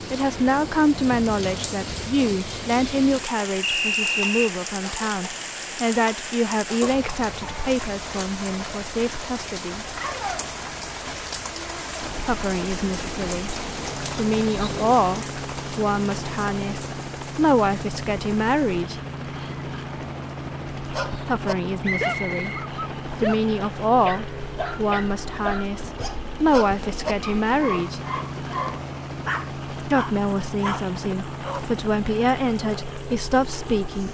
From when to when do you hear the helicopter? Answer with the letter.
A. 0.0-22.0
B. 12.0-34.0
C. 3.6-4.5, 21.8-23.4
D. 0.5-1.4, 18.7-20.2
B.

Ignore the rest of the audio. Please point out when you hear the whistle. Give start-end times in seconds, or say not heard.
3.6-4.5, 21.8-23.4.